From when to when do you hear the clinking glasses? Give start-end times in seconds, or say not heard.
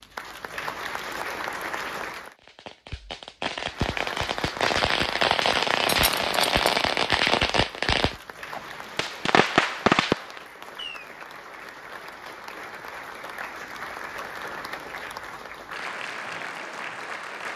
5.8-6.7.